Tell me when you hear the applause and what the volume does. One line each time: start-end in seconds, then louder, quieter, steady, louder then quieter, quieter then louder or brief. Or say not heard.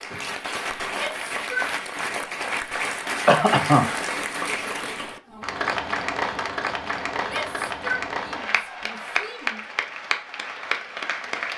0.0-11.5 steady.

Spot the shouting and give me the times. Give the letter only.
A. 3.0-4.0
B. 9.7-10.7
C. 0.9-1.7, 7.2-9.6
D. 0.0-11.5
C.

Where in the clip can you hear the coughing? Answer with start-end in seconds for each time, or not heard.
3.0-4.0.